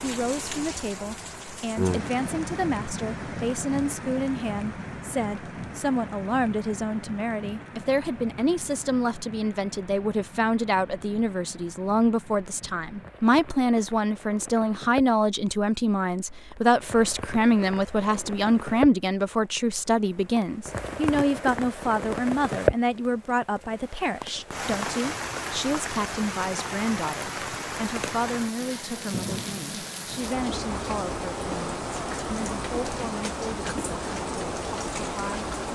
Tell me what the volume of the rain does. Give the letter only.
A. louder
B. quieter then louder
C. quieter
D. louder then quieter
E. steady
B.